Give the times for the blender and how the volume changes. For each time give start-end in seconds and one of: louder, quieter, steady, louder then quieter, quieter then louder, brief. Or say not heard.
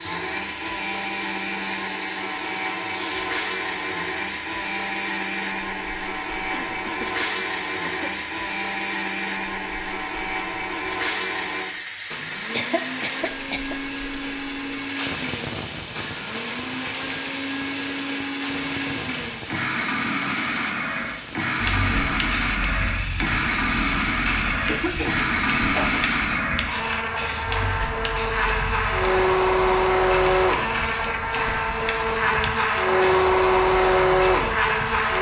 0.0-35.1 louder.